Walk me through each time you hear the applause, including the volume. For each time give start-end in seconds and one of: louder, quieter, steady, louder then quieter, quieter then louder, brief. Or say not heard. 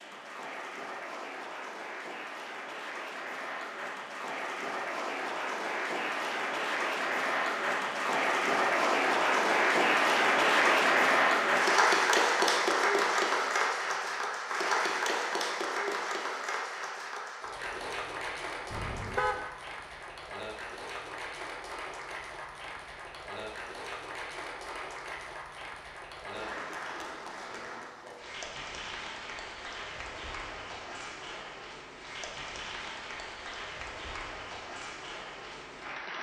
0.0-36.1 louder then quieter.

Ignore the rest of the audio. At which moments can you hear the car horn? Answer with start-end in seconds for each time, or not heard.
18.7-19.4.